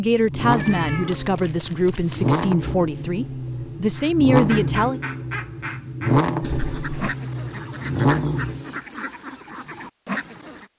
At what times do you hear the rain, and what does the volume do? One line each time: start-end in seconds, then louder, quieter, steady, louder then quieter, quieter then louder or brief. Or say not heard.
not heard.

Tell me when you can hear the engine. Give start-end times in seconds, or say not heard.
0.0-8.7.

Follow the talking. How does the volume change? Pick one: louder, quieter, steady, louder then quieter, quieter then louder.
quieter then louder.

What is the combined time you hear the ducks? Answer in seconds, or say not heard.
7 s.